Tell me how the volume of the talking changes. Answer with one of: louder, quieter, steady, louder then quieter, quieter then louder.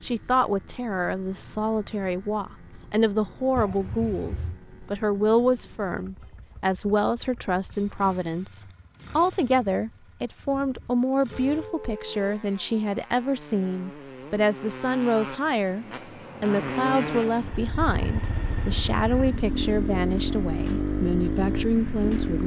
steady.